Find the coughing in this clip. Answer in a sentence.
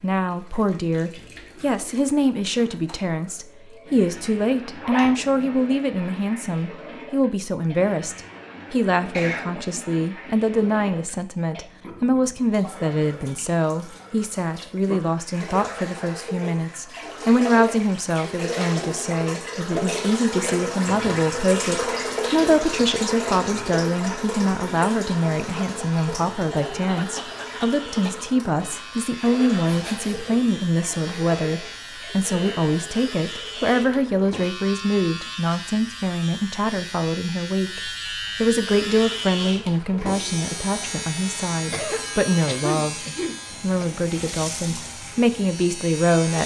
The coughing can be heard from 8.9 to 9.6 s, from 26.9 to 28.4 s and from 41.7 to 43.9 s.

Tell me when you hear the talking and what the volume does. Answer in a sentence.
You can hear the talking from 0.0 to 43.0 s, at a steady volume; and briefly from 43.6 to 46.4 s.